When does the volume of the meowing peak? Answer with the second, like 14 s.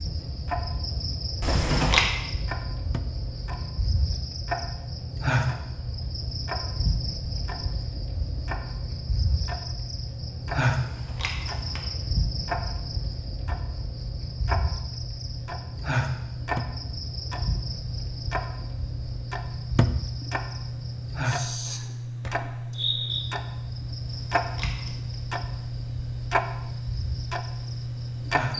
2 s.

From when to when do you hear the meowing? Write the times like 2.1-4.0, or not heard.
1.4-2.0, 10.8-11.8, 24.1-25.1.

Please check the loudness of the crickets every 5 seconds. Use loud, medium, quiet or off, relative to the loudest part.
loud, loud, loud, loud, loud, medium.